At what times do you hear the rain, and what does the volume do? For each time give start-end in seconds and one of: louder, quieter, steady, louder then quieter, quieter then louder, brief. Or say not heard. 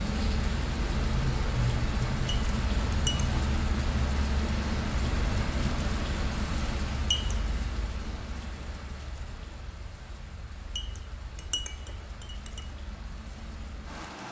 0.0-14.2 quieter.